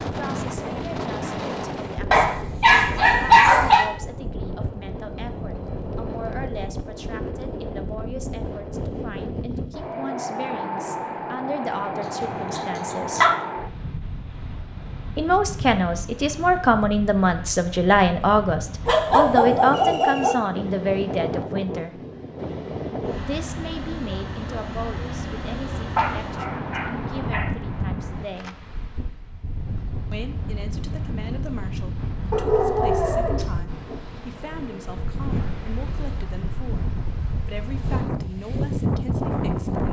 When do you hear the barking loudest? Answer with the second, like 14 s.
3 s.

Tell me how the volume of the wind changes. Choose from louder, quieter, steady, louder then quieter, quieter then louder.
steady.